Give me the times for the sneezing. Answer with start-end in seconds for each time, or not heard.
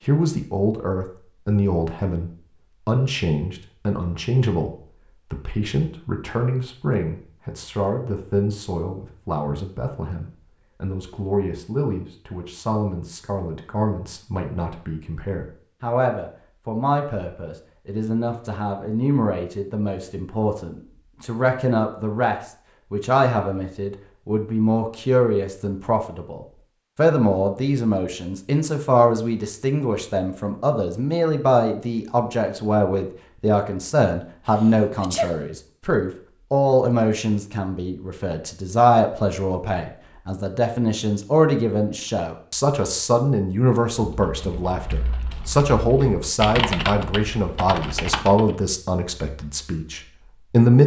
34.5-35.5.